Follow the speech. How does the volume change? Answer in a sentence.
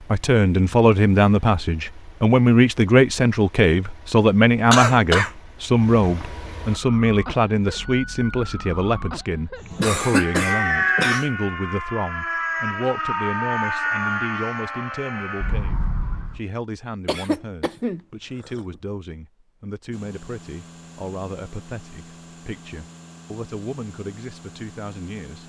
The volume of the speech goes down.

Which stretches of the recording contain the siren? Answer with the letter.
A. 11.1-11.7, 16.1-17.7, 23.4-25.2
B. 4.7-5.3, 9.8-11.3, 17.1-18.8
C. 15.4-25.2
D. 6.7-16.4
D.